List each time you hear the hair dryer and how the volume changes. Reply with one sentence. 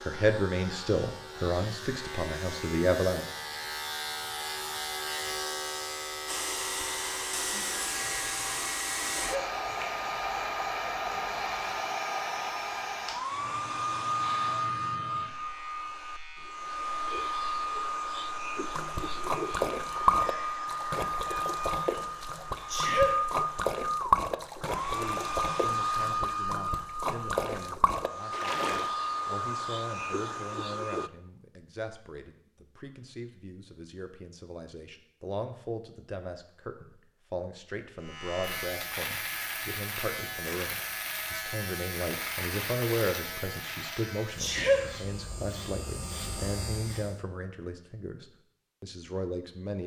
You can hear the hair dryer from 6.2 to 31.1 s, at a steady volume.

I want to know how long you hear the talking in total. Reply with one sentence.
The talking can be heard for 28 seconds in total.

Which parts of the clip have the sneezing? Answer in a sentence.
You can hear the sneezing from 9.1 to 9.6 s, from 22.6 to 23.2 s and from 44.4 to 44.9 s.